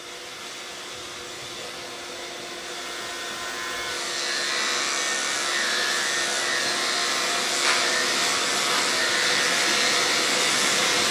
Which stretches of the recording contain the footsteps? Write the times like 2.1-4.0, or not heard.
not heard.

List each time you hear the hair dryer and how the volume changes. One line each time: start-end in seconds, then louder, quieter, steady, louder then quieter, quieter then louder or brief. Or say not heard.
0.0-11.0 louder.